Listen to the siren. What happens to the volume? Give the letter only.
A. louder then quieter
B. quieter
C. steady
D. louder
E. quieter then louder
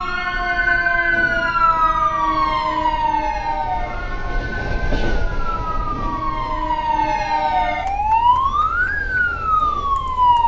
E.